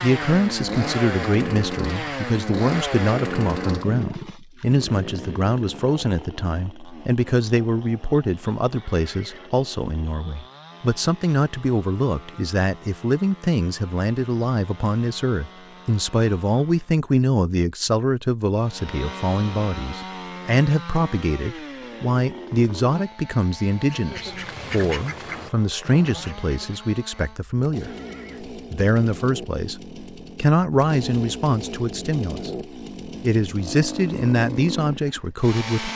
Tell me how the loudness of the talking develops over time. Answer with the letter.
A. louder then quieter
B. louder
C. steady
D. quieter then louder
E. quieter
C.